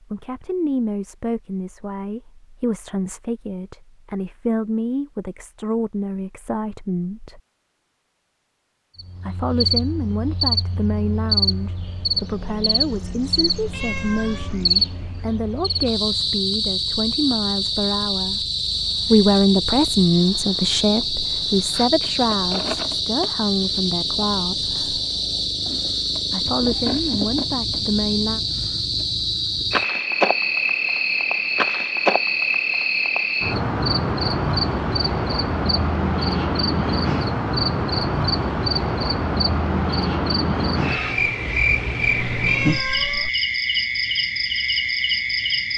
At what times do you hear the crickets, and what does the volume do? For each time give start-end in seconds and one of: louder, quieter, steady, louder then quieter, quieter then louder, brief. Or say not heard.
8.9-45.7 steady.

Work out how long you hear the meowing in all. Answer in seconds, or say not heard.
2 s.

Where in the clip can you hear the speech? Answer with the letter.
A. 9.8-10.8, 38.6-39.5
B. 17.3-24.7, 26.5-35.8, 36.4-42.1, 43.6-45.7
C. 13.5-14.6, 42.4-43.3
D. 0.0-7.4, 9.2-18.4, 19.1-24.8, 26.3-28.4
D.